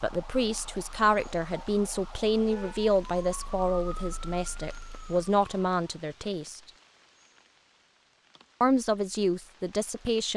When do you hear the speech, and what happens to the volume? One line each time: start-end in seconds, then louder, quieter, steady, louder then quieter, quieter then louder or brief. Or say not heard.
0.0-6.6 quieter then louder
8.6-10.3 brief.